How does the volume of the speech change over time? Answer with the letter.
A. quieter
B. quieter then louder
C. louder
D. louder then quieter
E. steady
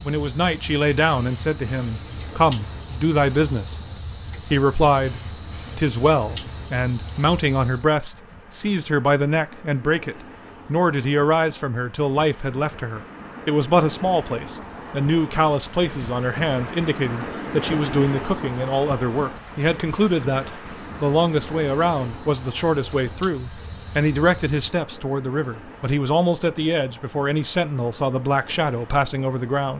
E.